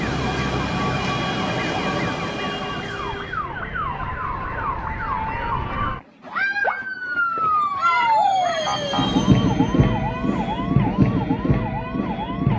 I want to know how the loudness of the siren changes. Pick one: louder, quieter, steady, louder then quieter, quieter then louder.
louder.